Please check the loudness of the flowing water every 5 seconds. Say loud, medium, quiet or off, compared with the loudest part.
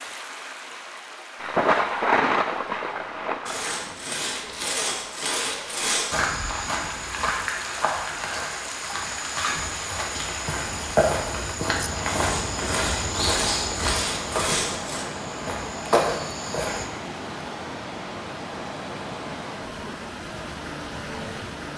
medium, loud, loud, loud, loud.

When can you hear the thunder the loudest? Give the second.
2 s.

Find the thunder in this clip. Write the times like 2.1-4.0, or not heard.
1.4-4.0.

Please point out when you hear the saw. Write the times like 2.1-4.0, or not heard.
3.5-6.2, 12.1-15.1.